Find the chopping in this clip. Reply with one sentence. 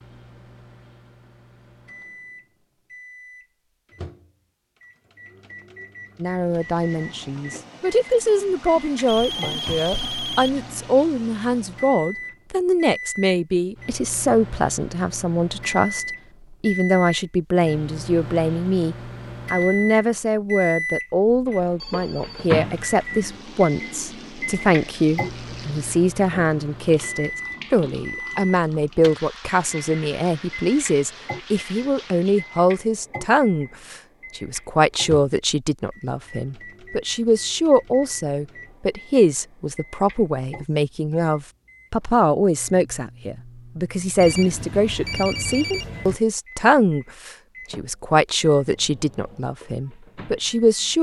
You can't hear the chopping here.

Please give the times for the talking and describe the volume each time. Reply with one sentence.
The talking can be heard from 6.2 to 50.9 s, at a steady volume.